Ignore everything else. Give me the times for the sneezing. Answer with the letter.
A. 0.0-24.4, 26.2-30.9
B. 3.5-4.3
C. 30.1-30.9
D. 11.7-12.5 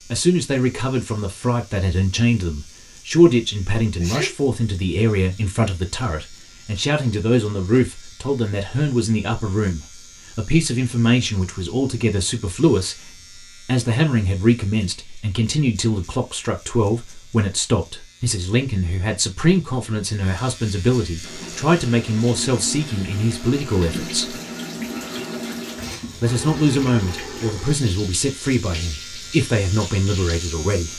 B.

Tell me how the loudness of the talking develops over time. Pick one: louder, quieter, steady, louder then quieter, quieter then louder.
steady.